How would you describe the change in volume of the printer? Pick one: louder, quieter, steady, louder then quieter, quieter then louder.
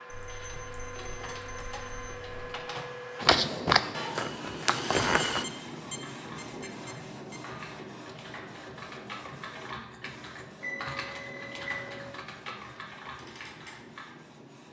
quieter.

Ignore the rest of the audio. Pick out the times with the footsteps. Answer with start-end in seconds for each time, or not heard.
3.2-5.5.